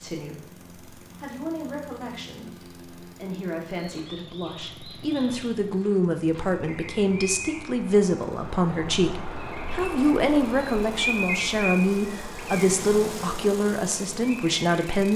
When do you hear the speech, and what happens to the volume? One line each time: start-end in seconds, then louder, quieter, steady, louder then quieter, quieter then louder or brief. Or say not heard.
0.0-15.1 louder.